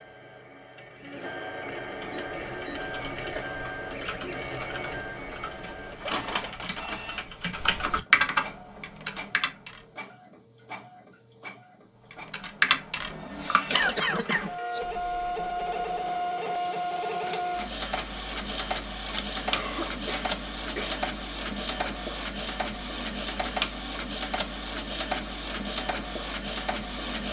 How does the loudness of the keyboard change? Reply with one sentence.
The loudness of the keyboard goes up, then down.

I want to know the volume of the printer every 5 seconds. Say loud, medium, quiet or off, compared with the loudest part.
medium, medium, medium, loud, loud, loud.